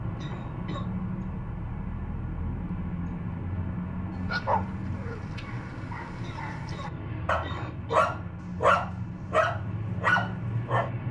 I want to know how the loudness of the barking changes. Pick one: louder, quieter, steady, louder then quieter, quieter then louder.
louder.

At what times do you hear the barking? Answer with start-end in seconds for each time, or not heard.
4.2-10.9.